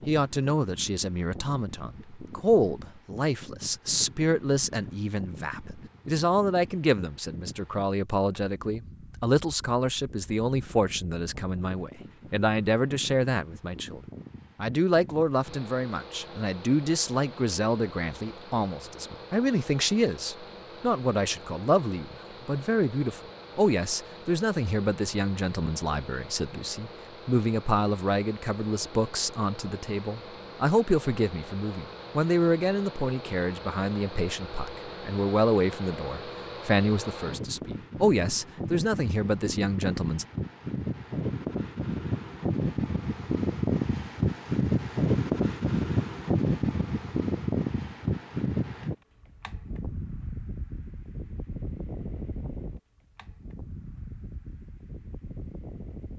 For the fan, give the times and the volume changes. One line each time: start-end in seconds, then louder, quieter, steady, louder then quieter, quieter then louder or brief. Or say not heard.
0.0-56.1 louder.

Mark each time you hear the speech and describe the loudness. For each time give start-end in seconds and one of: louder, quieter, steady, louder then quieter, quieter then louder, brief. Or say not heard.
0.1-40.2 steady.